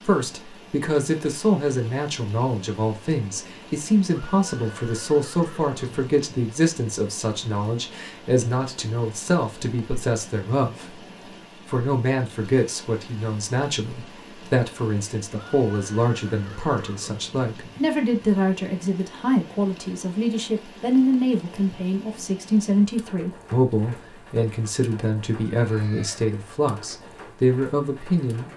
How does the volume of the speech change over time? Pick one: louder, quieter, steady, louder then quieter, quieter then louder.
steady.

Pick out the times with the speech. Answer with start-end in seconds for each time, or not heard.
0.0-28.5.